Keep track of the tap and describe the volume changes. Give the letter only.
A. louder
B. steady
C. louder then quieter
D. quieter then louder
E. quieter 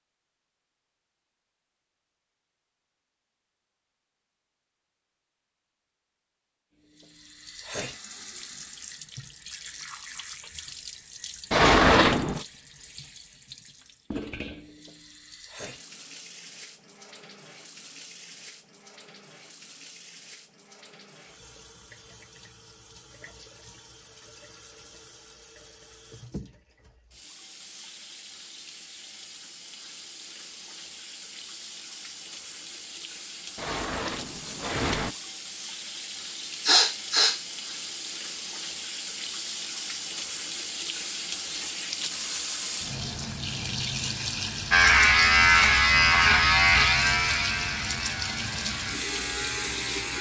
D.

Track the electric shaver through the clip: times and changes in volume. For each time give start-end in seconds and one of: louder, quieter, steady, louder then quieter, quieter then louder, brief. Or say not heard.
44.7-50.1 quieter.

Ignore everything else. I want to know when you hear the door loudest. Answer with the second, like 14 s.
12 s.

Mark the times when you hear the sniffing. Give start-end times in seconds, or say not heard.
36.6-37.4.